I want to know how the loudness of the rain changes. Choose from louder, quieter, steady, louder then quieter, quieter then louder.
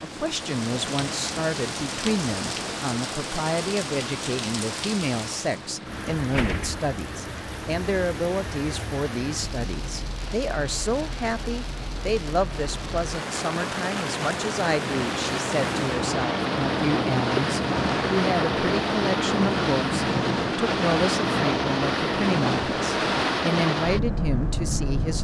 quieter then louder.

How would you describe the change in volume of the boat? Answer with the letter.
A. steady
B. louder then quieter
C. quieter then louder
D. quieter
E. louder
E.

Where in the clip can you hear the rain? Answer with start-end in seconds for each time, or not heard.
0.0-16.1.